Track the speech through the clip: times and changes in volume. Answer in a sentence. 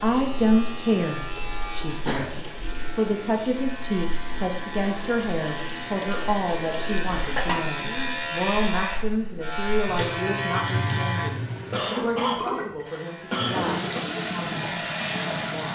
The speech can be heard from 0.0 to 15.6 s, getting quieter.